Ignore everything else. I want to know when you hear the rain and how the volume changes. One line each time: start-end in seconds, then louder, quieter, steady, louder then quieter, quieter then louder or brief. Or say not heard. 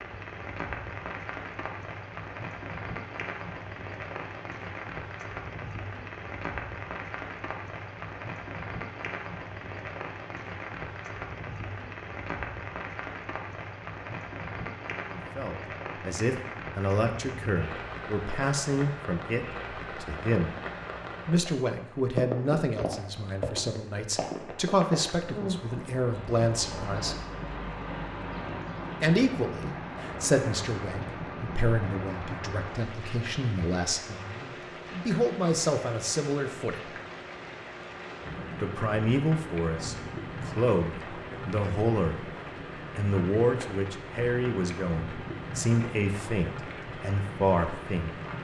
0.0-48.4 steady.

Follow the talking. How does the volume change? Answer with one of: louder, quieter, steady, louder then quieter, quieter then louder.
steady.